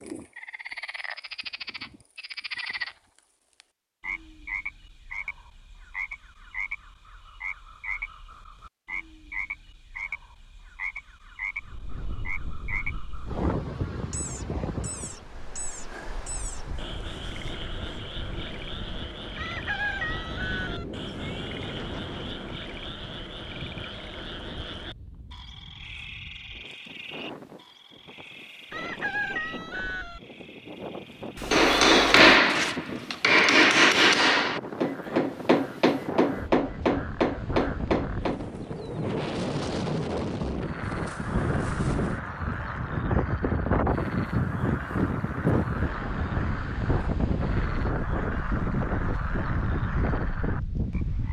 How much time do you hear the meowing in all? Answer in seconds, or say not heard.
3 s.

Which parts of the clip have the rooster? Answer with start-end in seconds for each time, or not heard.
19.4-20.9, 28.7-30.2.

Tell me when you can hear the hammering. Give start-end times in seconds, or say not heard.
31.5-38.4.